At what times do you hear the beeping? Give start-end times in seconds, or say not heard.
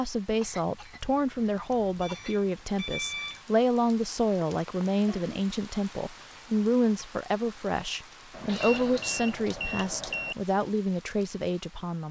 2.0-3.5, 8.3-10.3.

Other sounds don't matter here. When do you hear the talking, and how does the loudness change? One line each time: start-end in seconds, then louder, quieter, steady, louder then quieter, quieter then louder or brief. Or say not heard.
0.0-12.0 steady.